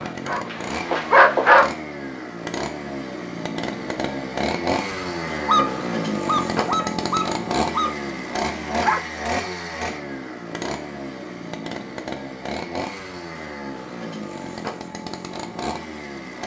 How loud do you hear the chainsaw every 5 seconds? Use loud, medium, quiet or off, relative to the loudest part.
loud, loud, medium, medium.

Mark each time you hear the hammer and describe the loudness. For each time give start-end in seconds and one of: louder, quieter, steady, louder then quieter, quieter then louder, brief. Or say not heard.
not heard.